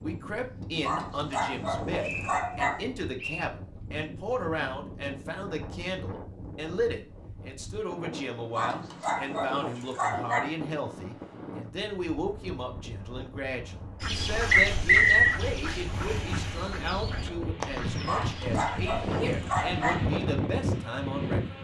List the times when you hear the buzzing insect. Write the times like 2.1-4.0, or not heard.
not heard.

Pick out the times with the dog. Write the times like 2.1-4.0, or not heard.
0.8-2.8, 8.6-10.6, 18.1-20.1.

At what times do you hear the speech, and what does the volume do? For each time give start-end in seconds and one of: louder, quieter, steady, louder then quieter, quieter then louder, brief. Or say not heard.
0.0-21.5 steady.